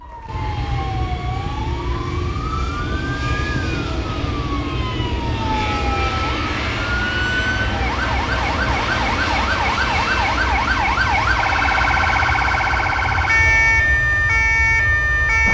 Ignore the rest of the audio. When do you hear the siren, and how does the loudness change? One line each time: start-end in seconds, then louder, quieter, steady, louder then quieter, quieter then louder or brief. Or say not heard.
0.0-15.4 louder.